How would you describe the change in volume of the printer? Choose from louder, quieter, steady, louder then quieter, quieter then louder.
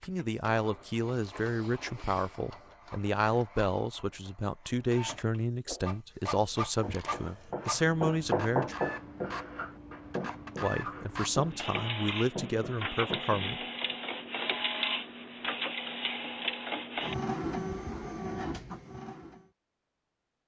louder.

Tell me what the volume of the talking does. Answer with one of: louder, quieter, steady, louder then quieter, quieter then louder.
steady.